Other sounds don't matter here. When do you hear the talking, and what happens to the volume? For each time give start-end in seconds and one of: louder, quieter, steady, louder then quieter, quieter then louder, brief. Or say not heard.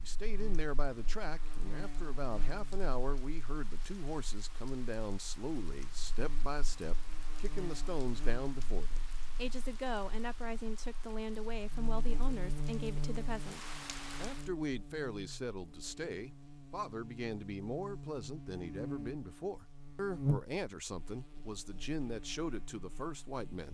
0.0-23.6 steady.